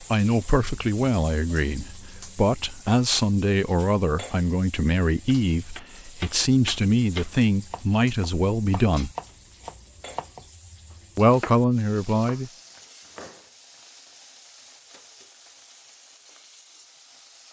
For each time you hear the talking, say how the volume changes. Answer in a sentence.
You can hear the talking from 0.0 to 9.1 s, at a steady volume; and briefly from 11.2 to 12.5 s.